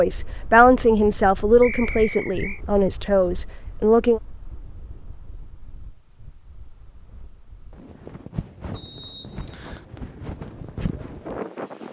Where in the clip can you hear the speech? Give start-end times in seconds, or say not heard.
0.0-4.2.